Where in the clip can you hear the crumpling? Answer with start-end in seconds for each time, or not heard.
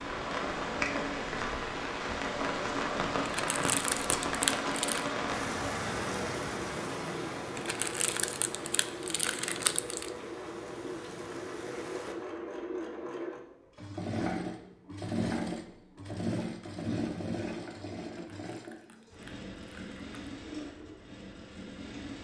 3.2-5.0, 7.5-10.1, 18.1-20.1.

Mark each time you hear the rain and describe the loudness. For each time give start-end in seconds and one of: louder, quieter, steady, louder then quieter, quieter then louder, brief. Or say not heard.
0.0-12.2 quieter.